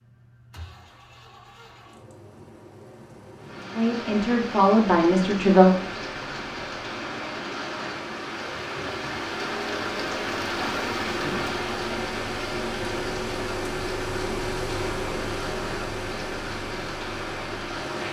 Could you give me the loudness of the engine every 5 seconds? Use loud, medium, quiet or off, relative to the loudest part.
quiet, medium, loud, loud.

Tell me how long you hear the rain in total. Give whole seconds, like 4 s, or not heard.
15 s.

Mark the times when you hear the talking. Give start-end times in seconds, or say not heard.
3.7-5.7.